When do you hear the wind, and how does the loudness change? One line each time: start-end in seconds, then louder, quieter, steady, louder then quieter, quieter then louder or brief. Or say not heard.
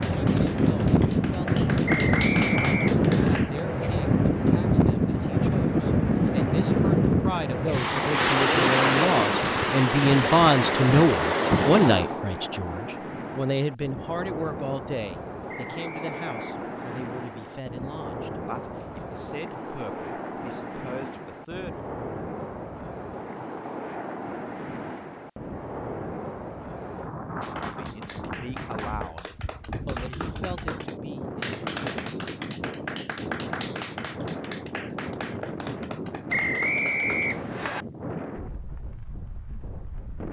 0.0-40.2 quieter.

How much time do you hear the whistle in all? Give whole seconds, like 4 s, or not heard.
5 s.